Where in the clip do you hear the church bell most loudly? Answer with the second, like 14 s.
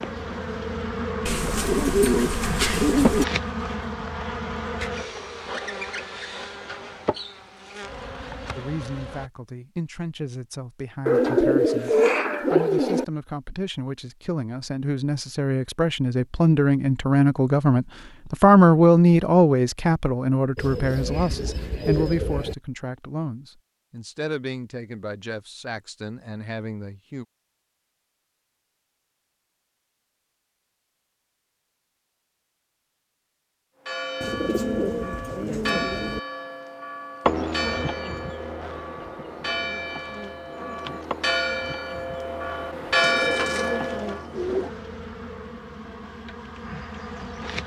43 s.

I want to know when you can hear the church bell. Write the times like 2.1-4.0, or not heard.
33.9-44.2.